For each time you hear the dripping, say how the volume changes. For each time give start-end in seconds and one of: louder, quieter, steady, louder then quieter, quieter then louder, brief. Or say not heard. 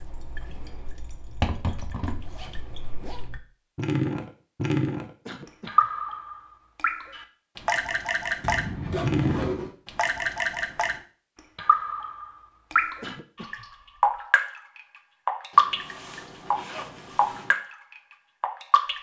0.0-18.9 louder.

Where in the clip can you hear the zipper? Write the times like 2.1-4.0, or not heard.
2.2-3.3, 8.4-9.8, 15.5-17.6.